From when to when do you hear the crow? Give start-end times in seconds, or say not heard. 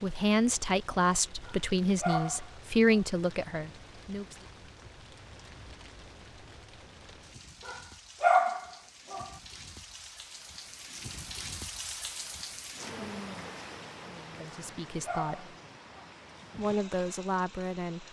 not heard.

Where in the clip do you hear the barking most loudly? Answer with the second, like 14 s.
8 s.